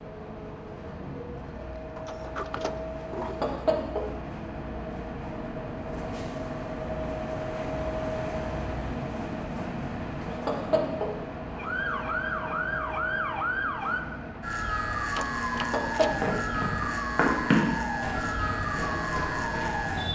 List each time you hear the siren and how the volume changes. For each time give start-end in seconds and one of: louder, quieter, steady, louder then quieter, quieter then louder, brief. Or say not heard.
11.5-20.0 steady.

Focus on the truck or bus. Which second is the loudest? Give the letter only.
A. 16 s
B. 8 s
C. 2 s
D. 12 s
B.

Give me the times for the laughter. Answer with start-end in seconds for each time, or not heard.
3.2-4.0, 10.2-11.1, 15.5-16.4.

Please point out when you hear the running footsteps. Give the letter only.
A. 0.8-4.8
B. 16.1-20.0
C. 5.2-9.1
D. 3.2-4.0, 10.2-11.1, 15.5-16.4
B.